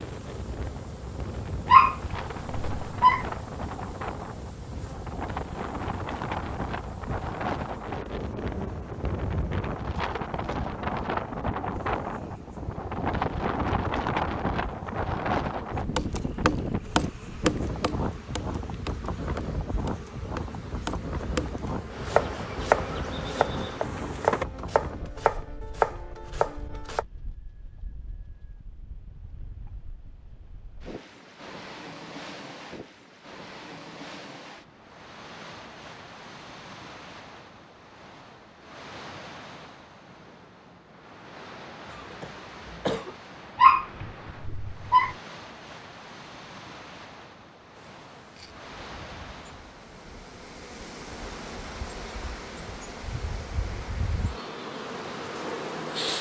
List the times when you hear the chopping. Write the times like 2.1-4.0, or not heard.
15.9-27.1.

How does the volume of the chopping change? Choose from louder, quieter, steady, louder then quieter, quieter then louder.
quieter then louder.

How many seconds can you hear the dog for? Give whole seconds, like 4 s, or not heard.
3 s.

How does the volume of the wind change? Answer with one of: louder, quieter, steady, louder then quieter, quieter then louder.
quieter.